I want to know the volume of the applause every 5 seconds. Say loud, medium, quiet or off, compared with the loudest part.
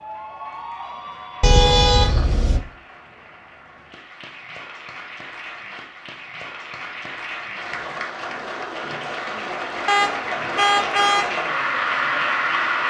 quiet, medium, loud.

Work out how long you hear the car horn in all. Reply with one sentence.
The car horn can be heard for 3 seconds in total.